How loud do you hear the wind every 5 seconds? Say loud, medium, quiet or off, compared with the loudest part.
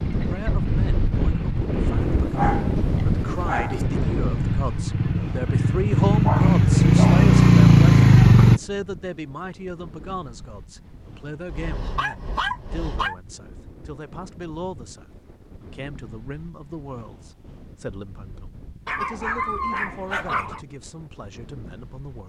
loud, quiet, quiet, quiet, quiet.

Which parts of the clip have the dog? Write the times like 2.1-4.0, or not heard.
2.0-3.9, 6.2-7.3, 11.4-13.2, 18.9-20.6.